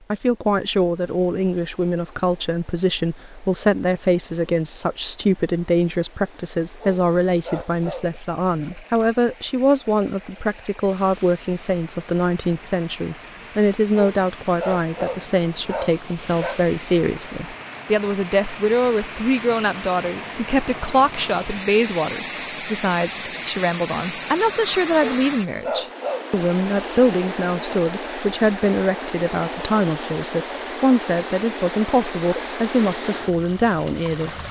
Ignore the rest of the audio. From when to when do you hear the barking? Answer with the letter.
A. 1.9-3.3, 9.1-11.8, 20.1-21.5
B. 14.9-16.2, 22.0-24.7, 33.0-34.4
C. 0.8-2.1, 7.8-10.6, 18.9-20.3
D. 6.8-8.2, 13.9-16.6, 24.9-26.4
D.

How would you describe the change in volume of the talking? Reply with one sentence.
The loudness of the talking stays about the same.